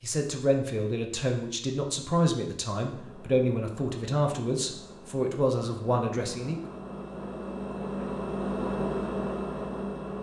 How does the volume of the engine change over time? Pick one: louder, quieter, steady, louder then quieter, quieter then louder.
louder.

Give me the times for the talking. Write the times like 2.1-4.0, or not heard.
0.0-6.6.